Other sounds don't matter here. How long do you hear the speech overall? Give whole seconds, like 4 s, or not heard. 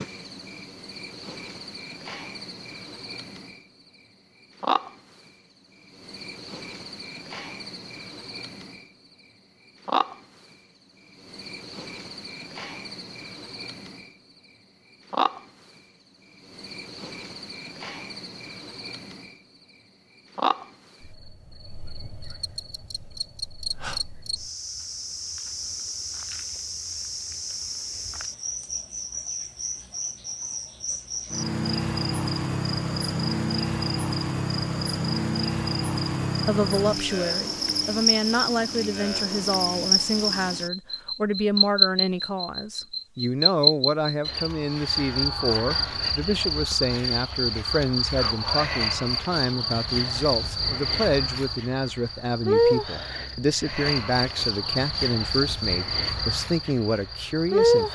21 s.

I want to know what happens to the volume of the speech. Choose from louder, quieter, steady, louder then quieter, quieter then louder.
steady.